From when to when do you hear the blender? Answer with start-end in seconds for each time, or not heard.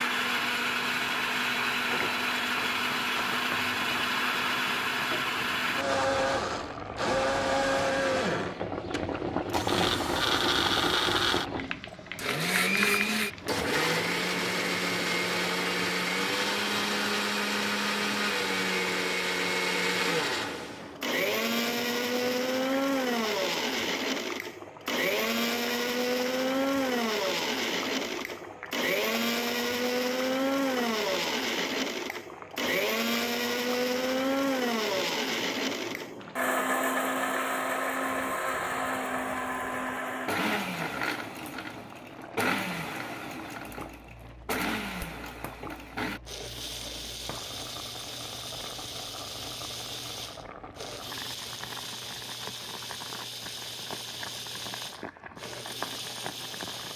0.0-56.9.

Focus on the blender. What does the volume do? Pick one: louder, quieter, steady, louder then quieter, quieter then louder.
quieter.